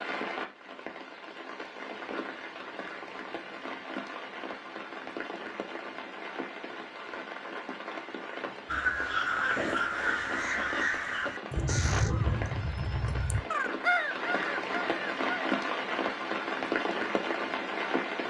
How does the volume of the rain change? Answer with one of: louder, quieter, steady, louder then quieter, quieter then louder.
louder.